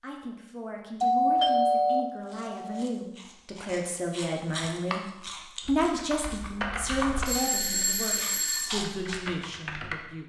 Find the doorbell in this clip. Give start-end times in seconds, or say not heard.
1.0-2.9, 7.2-8.8.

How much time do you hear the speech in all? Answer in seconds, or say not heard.
10 s.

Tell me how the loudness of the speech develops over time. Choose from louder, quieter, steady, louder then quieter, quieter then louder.
louder then quieter.